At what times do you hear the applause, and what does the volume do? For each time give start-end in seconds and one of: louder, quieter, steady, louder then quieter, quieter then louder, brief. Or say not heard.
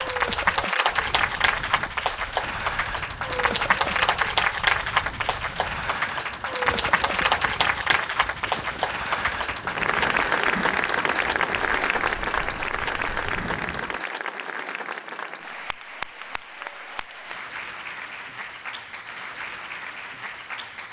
0.0-20.8 quieter.